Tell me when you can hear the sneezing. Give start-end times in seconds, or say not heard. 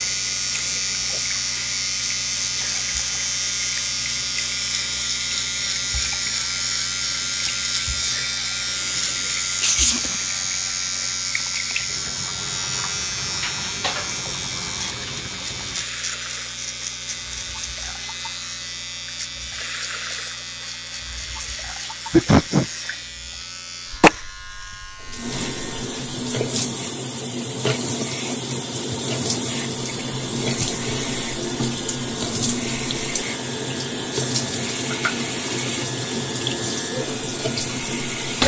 8.8-10.2, 22.1-22.6.